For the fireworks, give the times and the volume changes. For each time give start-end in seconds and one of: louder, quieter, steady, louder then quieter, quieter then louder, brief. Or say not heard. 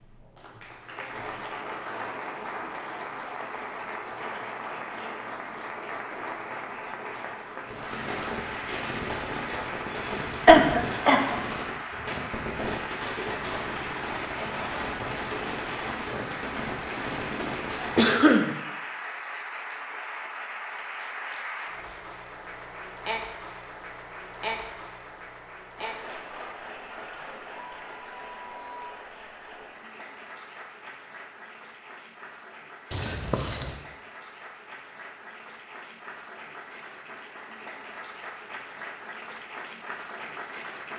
7.7-18.1 steady.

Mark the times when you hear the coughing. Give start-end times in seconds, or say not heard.
10.4-11.3, 17.9-18.5, 32.9-33.8.